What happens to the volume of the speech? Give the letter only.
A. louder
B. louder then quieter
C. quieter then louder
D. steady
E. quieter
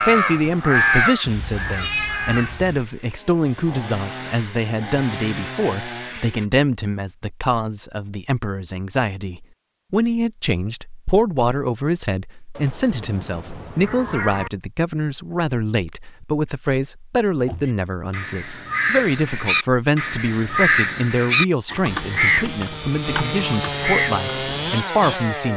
D.